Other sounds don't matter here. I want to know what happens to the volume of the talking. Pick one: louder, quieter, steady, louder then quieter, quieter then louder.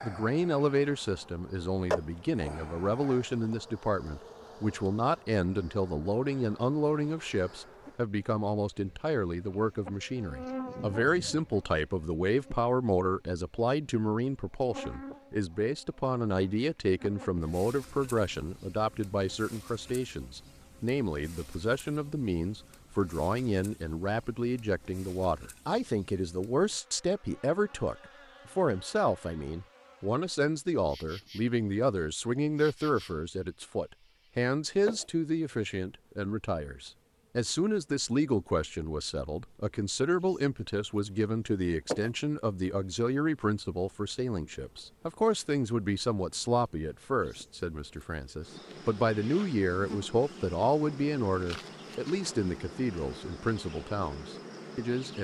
steady.